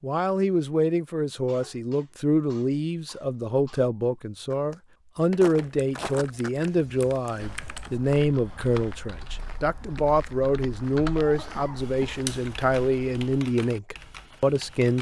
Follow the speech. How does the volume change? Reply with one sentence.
The loudness of the speech stays about the same.